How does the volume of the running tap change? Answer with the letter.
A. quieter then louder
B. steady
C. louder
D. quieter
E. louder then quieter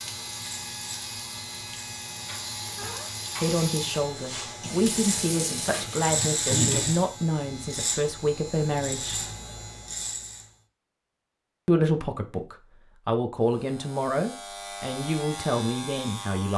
C.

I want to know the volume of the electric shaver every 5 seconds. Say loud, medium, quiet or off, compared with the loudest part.
medium, loud, medium, medium.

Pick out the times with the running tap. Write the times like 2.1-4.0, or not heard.
0.0-7.1.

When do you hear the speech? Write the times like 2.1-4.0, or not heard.
3.4-9.2, 11.7-16.5.